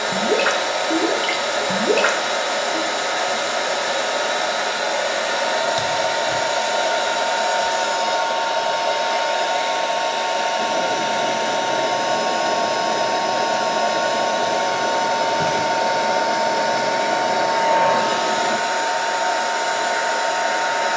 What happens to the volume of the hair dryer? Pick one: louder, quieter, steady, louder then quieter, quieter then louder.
steady.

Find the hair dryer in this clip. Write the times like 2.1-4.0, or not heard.
0.0-20.9.